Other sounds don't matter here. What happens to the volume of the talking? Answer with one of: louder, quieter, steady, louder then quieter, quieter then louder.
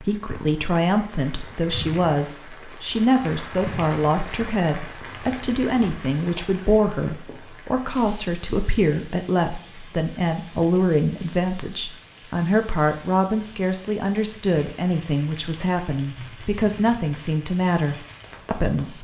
steady.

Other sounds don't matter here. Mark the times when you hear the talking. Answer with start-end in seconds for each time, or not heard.
0.0-19.0.